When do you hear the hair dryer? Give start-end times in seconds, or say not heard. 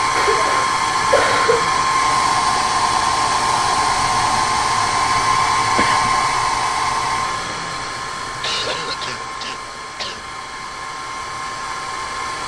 0.0-12.4.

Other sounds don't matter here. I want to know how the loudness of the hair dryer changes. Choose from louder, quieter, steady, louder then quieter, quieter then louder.
quieter.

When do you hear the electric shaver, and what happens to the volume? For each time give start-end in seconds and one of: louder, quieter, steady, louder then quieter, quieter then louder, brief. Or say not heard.
not heard.